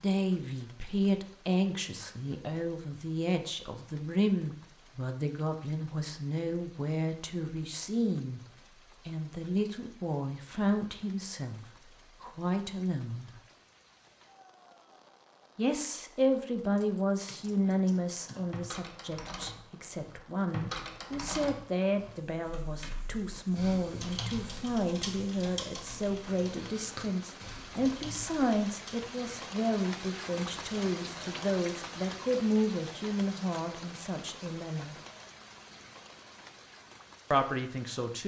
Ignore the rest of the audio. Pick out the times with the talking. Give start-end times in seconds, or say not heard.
0.0-13.3, 15.6-35.0, 37.3-38.2.